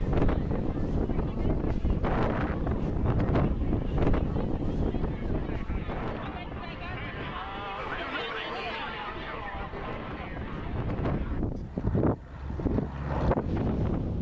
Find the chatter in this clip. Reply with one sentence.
The chatter can be heard from 0.0 to 11.4 s.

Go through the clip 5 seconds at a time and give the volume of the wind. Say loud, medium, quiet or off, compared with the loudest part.
loud, medium, loud.